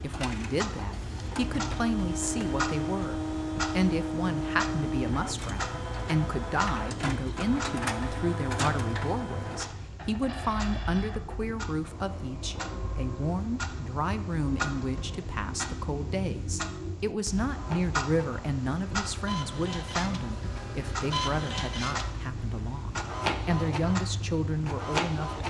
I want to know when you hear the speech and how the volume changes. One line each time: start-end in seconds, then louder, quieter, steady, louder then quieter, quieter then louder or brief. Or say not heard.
0.0-25.4 steady.